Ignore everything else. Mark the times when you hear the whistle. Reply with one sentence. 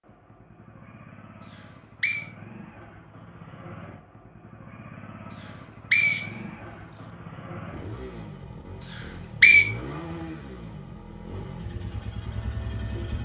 The whistle can be heard from 1.5 to 2.2 s, from 5.5 to 7.0 s and from 8.9 to 9.7 s.